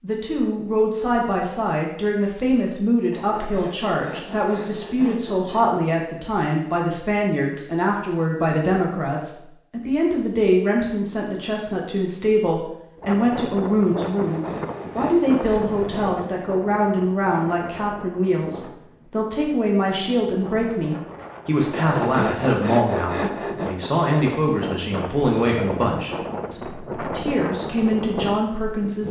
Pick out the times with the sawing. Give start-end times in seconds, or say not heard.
3.1-5.8, 14.0-16.1, 21.7-23.8.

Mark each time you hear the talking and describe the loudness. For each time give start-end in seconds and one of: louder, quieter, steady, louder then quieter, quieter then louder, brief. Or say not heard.
0.0-29.0 steady.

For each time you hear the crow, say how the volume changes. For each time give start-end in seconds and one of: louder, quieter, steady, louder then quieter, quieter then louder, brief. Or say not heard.
not heard.